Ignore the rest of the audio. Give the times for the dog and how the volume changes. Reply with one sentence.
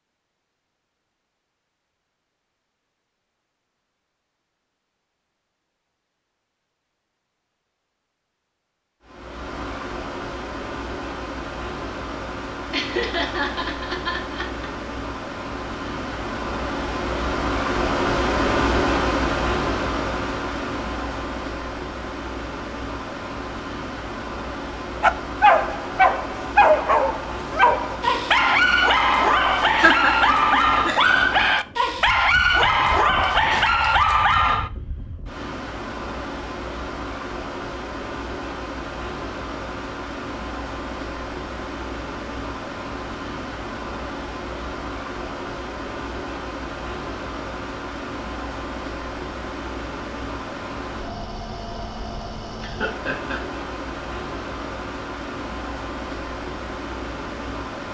You can hear the dog from 25.0 to 34.7 s, at a steady volume.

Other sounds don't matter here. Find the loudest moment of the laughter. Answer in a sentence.
The loudest moment of the laughter is at 30 seconds.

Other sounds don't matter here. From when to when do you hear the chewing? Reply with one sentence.
The chewing can't be heard in this clip.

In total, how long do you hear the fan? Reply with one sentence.
You can hear the fan for 49 seconds altogether.